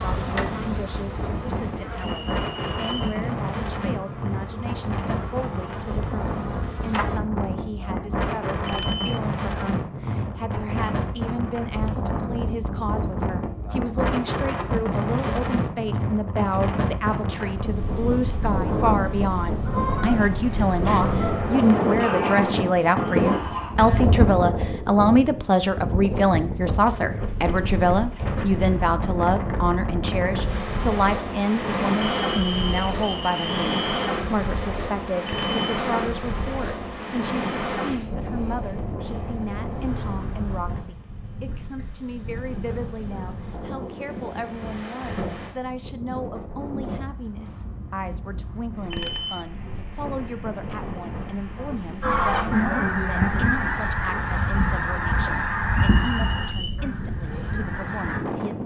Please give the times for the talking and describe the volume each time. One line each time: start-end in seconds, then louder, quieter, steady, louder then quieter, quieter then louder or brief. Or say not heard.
0.0-58.6 louder then quieter.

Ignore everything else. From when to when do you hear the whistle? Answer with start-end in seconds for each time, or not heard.
1.9-3.2, 32.0-34.1, 55.7-56.7.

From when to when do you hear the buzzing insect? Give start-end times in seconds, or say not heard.
0.0-7.2.